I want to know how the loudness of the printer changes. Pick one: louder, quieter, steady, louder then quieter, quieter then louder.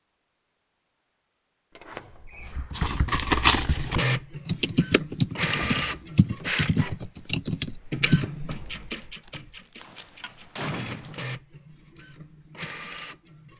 quieter.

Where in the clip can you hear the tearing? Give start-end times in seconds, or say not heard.
2.7-4.0, 8.8-10.1.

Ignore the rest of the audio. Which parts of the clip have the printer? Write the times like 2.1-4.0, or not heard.
3.8-13.5.